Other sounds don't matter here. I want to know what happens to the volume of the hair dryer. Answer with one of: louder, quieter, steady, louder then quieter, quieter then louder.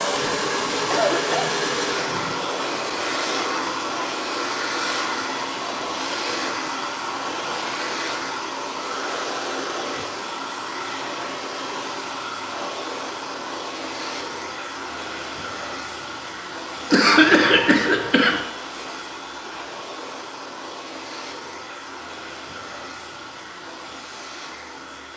quieter.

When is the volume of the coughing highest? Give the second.
17 s.